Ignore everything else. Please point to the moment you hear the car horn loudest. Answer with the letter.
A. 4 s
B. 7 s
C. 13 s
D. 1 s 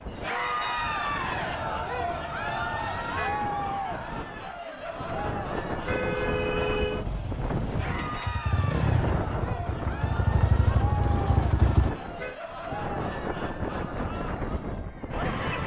B.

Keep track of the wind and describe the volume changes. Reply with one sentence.
The volume of the wind goes up.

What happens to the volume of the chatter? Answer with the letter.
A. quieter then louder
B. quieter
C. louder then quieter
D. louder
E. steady
B.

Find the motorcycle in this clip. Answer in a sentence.
The motorcycle can be heard from 7.0 to 11.9 s.